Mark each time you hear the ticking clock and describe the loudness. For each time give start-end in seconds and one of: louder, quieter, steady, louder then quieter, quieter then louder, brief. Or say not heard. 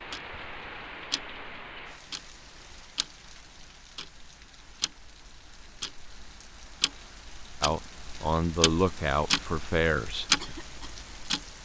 0.0-11.6 quieter then louder.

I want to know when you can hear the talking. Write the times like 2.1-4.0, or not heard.
7.6-10.3.